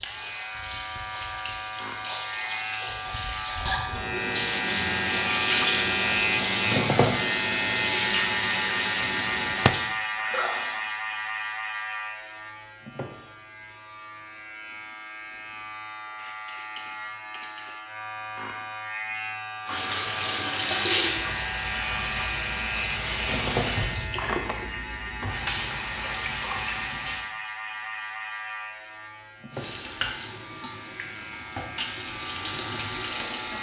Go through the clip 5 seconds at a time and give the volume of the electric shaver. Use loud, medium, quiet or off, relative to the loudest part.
medium, loud, medium, medium, medium, medium, quiet.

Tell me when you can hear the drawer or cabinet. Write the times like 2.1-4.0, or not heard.
9.0-9.8, 24.1-24.7.